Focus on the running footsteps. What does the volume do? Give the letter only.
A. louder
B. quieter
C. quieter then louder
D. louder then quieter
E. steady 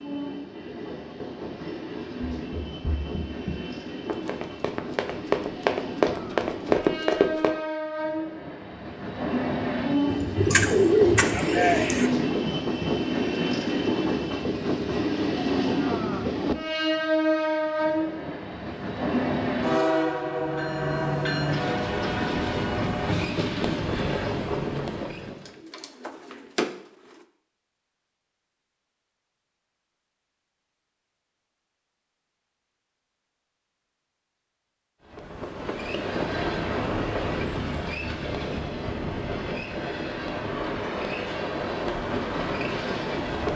A.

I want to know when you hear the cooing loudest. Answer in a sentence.
The volume of the cooing peaks at 11 seconds.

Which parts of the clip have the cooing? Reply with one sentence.
You can hear the cooing from 10.1 to 12.1 s and from 25.2 to 27.2 s.